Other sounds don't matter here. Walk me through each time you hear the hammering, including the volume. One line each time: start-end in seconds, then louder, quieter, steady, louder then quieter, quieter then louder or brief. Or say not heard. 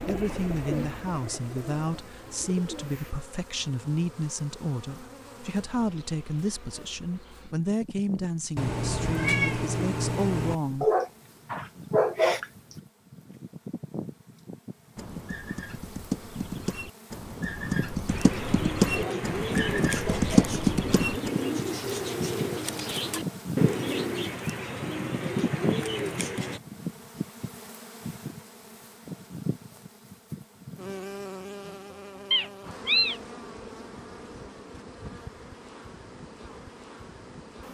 not heard.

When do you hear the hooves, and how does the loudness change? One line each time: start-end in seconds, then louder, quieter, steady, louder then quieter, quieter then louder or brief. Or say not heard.
14.9-21.3 louder.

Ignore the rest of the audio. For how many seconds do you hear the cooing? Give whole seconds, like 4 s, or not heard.
12 s.